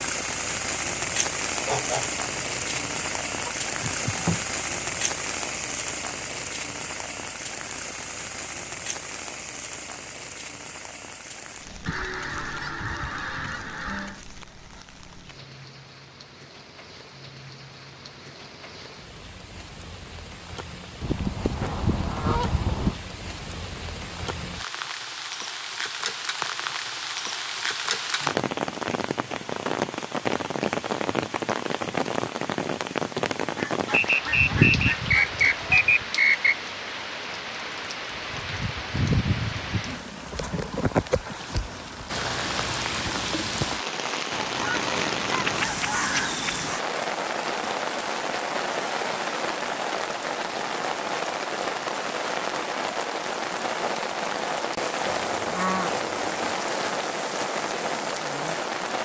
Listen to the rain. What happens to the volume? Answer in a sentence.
The loudness of the rain goes down, then up.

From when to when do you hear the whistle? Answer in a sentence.
The whistle can be heard from 33.9 to 36.5 s.